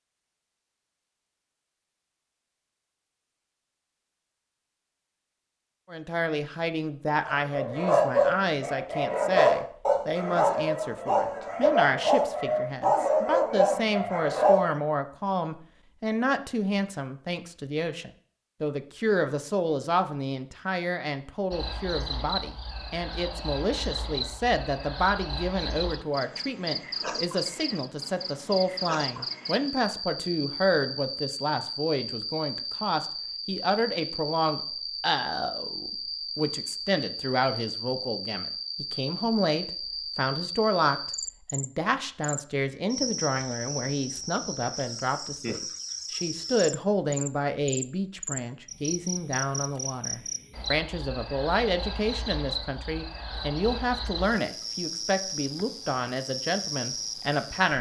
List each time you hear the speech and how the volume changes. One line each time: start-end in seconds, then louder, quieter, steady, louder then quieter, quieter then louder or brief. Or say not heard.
5.9-57.7 steady.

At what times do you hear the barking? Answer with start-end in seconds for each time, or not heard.
7.2-14.8.